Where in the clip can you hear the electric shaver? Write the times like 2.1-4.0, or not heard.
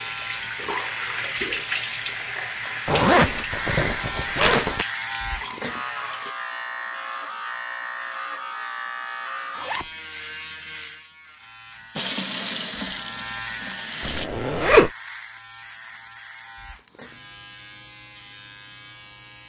0.0-19.4.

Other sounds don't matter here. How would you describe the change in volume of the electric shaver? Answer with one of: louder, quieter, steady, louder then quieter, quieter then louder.
quieter.